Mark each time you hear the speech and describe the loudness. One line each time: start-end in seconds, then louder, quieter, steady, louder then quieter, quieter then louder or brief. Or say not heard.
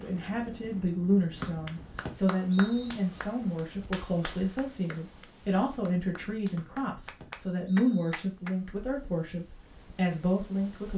0.0-10.9 steady.